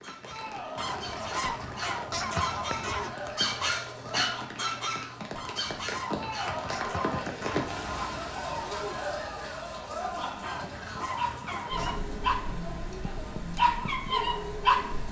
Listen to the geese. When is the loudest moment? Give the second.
2 s.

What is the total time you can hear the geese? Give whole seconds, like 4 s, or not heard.
7 s.